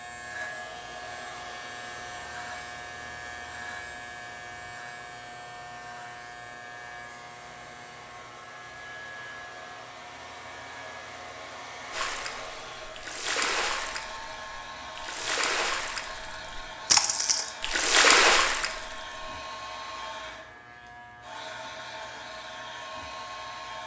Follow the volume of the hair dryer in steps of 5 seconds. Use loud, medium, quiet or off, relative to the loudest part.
medium, medium, loud, loud, loud.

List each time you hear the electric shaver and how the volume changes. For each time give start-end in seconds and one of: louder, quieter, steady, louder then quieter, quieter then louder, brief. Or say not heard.
0.0-23.8 quieter.